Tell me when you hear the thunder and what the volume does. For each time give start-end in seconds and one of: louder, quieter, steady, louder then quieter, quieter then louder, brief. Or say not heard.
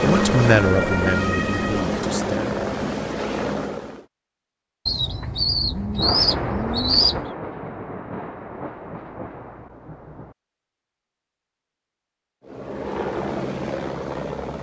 6.0-10.3 quieter.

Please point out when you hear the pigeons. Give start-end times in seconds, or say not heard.
4.8-7.2.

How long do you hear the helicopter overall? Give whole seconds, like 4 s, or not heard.
6 s.